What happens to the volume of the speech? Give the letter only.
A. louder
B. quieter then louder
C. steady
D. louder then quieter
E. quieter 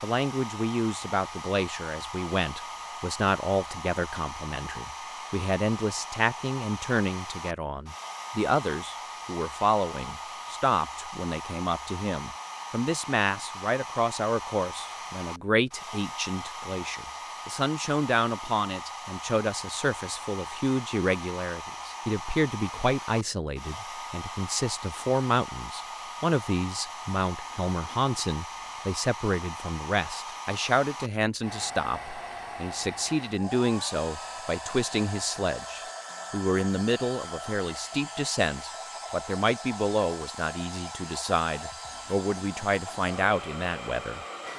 C.